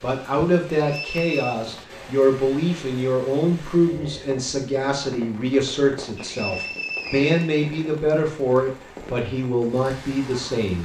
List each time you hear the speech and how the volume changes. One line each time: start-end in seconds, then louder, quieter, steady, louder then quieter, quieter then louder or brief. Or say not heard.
0.0-10.8 steady.